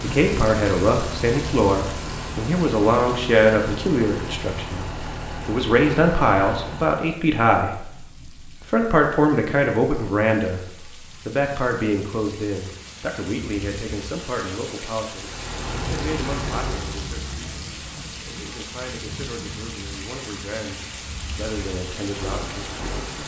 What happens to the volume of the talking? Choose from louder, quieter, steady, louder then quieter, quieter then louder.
quieter.